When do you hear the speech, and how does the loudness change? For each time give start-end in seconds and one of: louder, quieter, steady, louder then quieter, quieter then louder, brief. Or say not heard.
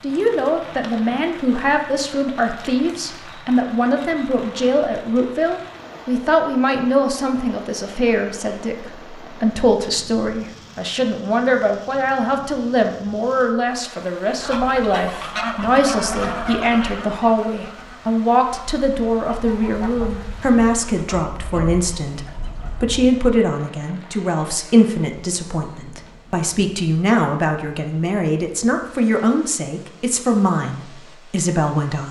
0.0-32.0 steady.